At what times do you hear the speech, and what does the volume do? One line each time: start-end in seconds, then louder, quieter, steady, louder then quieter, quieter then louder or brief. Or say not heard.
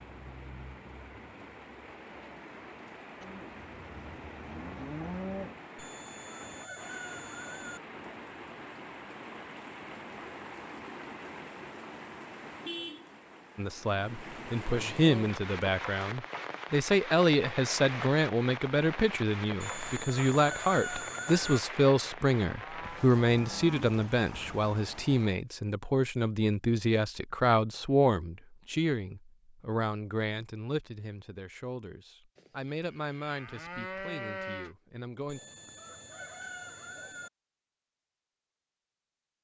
13.6-35.4 quieter.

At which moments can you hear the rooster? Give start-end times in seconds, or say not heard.
5.8-7.8, 19.6-21.6, 35.2-37.3.